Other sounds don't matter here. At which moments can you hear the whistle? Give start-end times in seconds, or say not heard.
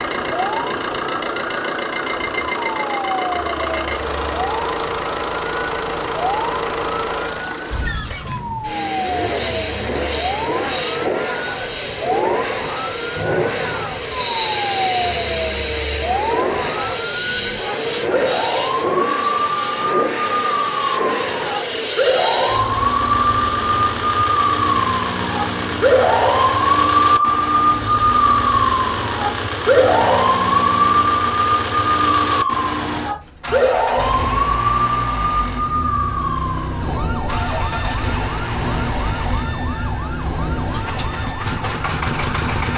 13.2-14.5.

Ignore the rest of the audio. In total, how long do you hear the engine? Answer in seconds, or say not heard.
43 s.